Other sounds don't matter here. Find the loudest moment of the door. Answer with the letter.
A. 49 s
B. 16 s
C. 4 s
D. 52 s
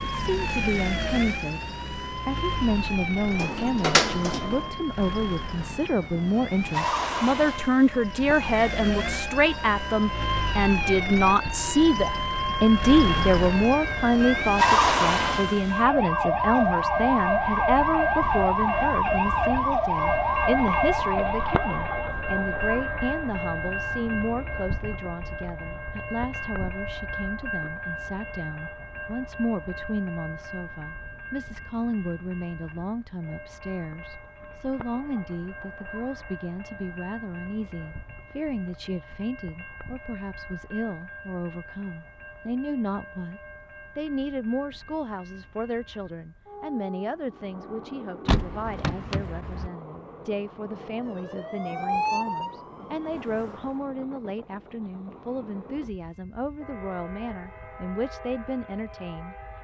C.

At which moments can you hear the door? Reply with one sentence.
The door can be heard from 3.2 to 4.7 s and from 48.2 to 49.7 s.